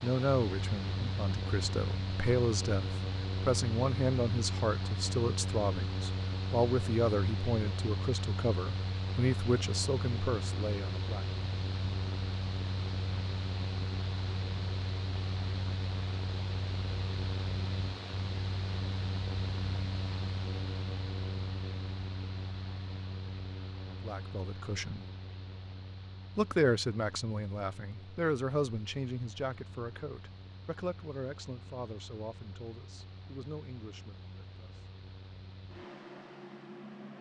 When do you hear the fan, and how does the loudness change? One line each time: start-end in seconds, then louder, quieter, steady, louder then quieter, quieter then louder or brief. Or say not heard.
0.0-37.1 quieter.